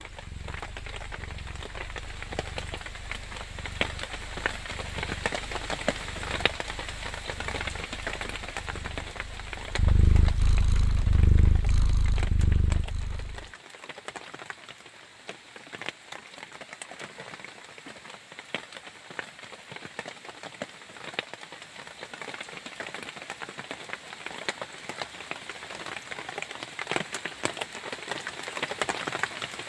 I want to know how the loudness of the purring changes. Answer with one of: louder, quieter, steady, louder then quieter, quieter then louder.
louder.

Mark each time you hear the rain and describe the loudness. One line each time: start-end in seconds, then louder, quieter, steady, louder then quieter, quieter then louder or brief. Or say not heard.
0.0-29.6 quieter then louder.